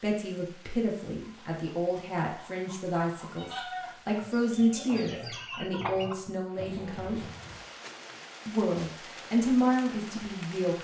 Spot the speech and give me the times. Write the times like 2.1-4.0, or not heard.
0.0-7.2, 8.4-10.7.